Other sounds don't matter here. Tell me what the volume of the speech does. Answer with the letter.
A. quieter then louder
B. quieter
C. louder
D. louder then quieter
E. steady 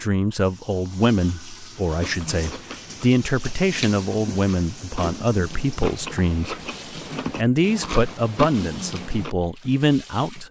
E.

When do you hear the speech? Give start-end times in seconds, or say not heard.
0.0-6.5, 7.3-10.4.